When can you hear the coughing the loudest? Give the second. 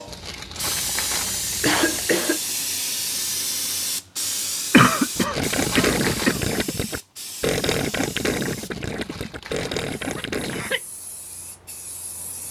5 s.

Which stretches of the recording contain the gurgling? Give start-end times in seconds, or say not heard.
5.3-10.8.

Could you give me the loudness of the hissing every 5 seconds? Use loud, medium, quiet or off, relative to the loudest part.
loud, medium, quiet.